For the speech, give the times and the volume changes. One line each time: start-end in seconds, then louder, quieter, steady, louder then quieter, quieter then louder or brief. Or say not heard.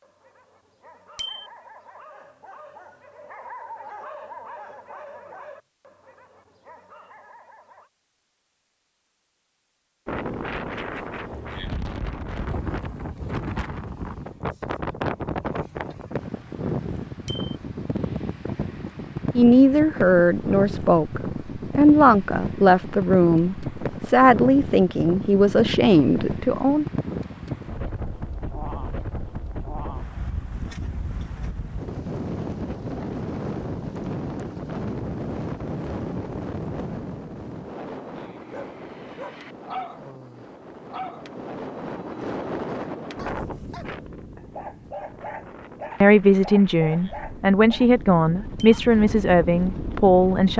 19.4-26.9 steady
46.0-50.5 steady.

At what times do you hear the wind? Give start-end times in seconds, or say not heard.
10.1-50.5.